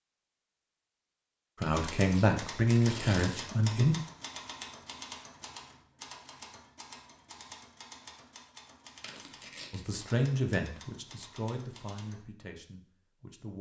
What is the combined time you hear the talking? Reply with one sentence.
You can hear the talking for 6 seconds altogether.